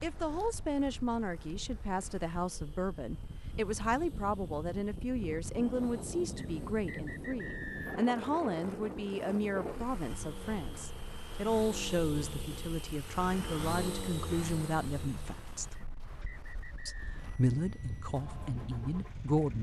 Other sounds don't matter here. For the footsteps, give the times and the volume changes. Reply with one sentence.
The footsteps can't be heard in this clip.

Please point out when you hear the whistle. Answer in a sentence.
You can hear the whistle from 6.3 to 8.1 s and from 15.8 to 17.1 s.